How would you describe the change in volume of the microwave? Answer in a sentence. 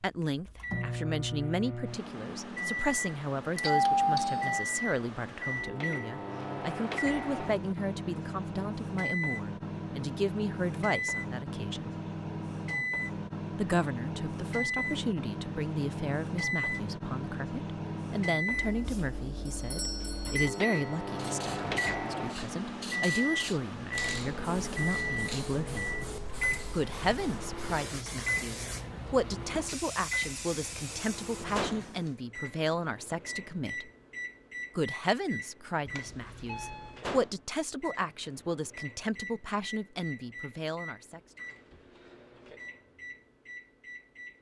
The volume of the microwave goes down.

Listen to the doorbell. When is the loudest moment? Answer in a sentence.
The loudest moment of the doorbell is at 4 seconds.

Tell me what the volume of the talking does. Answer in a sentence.
The loudness of the talking stays about the same.